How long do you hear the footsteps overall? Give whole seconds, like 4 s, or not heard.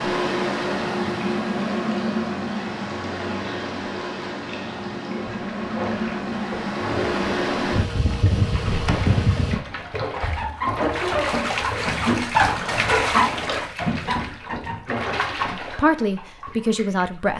not heard.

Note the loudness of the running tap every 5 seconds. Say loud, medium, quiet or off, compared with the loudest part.
quiet, medium, loud, medium.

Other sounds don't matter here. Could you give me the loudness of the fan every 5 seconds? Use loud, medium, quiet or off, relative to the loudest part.
loud, loud, off, off.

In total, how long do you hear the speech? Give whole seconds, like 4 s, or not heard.
2 s.